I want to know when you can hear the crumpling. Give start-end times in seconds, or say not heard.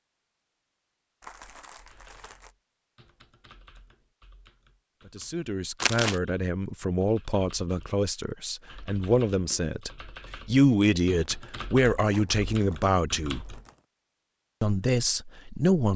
1.2-2.5, 5.8-6.2, 11.4-13.8.